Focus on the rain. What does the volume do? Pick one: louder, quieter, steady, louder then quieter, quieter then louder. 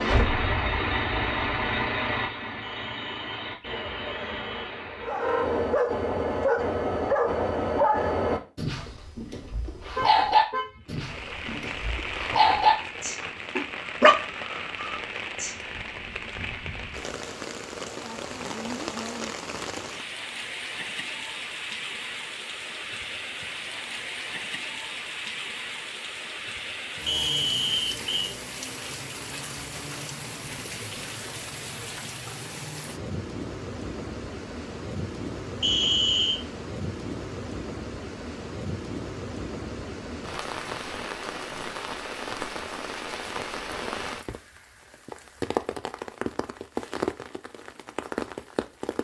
steady.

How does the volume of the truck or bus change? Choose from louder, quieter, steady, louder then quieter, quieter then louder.
quieter.